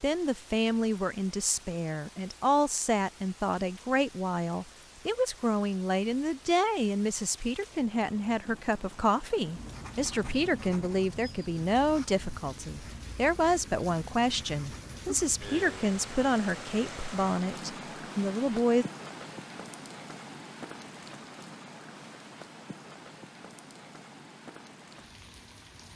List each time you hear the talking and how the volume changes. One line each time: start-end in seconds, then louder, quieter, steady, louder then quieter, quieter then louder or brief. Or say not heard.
0.0-18.9 steady.